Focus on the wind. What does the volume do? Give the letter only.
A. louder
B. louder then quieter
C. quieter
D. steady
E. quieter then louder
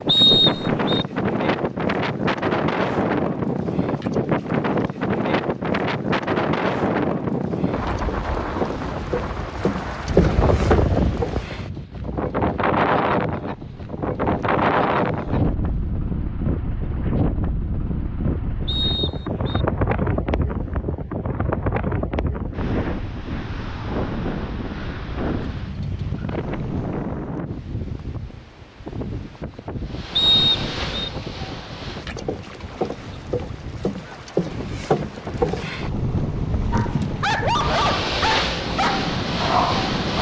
C.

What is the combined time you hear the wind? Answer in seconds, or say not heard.
40 s.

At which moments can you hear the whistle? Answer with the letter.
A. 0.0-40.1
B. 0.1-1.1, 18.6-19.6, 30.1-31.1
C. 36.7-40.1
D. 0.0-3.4
B.